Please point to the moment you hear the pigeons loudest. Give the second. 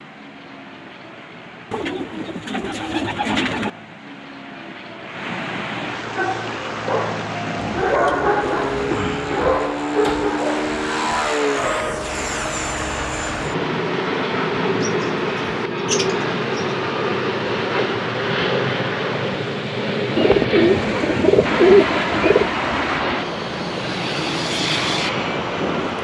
22 s.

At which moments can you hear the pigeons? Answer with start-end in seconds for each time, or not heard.
1.7-3.7, 7.5-9.5, 14.8-16.8, 20.1-22.6.